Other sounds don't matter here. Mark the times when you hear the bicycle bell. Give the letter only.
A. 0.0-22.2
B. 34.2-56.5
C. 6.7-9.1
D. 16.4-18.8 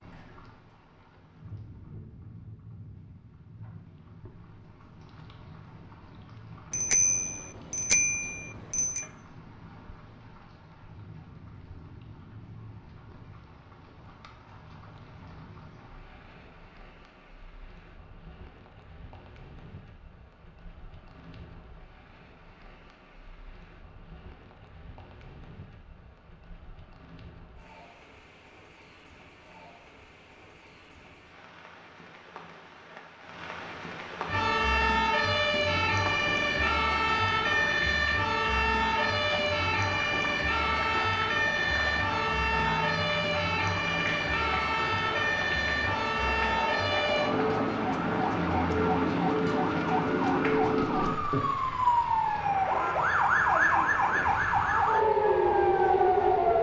C.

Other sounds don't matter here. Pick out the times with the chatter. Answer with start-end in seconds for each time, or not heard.
not heard.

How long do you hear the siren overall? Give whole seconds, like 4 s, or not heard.
22 s.